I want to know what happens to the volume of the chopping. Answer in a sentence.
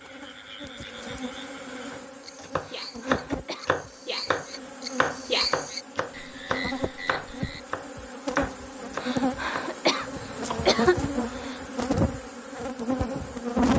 The loudness of the chopping goes down.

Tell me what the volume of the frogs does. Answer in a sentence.
The loudness of the frogs goes up, then down.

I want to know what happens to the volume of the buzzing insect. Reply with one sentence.
The loudness of the buzzing insect goes up.